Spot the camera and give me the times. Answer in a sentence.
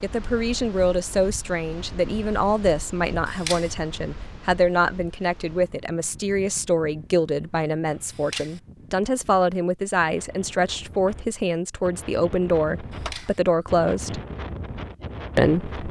You can hear the camera from 3.1 to 3.8 s, from 7.8 to 8.6 s and from 12.8 to 13.4 s.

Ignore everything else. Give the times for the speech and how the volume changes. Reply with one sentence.
You can hear the speech from 0.0 to 14.2 s, at a steady volume; and briefly from 15.3 to 15.8 s.